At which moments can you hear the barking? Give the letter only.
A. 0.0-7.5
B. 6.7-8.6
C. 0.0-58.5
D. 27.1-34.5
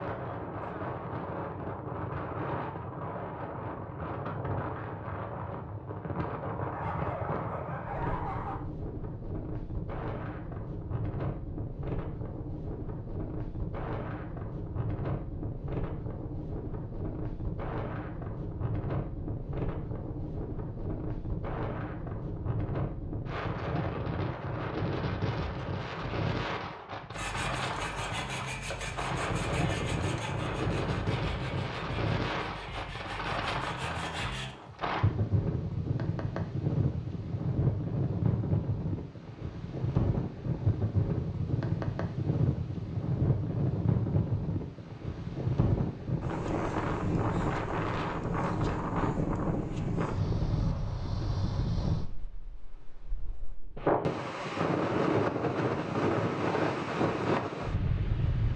B.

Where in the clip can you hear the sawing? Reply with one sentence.
You can hear the sawing from 27.1 to 34.5 s.